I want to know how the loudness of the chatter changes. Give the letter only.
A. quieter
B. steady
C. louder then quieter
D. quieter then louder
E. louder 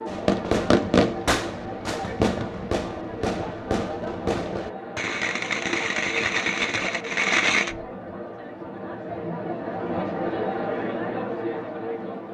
E.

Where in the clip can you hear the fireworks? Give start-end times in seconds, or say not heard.
0.1-7.8.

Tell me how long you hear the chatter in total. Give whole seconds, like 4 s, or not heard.
12 s.